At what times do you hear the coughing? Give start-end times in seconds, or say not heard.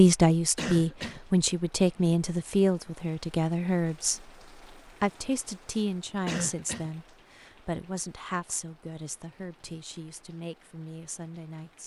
0.6-1.2, 6.2-6.9.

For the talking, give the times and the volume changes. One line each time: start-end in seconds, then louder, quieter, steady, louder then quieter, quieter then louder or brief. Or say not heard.
0.0-11.8 quieter.